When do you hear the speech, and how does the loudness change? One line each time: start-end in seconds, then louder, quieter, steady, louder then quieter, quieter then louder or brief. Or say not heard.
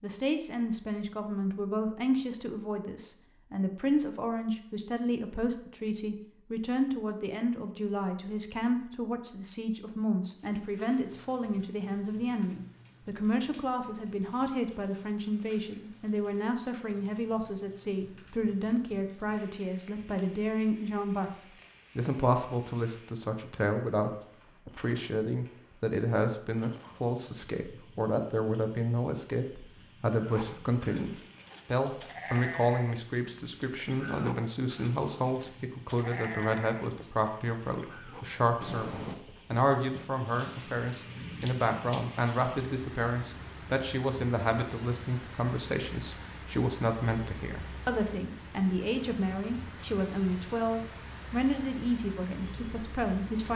0.0-21.3 steady
21.9-53.5 steady.